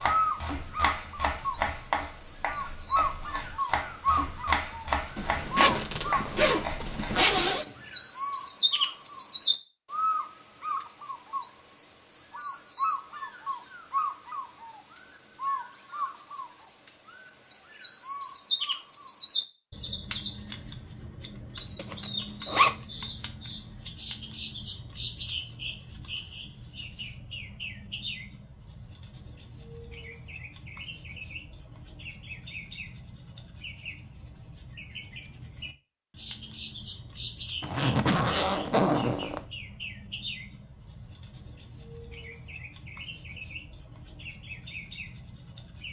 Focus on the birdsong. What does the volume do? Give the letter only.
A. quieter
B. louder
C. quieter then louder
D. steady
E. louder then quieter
A.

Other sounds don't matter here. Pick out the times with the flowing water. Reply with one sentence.
You can't hear the flowing water here.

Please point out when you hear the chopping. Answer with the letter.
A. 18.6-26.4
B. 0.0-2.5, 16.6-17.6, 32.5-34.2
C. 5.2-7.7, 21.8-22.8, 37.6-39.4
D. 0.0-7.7
D.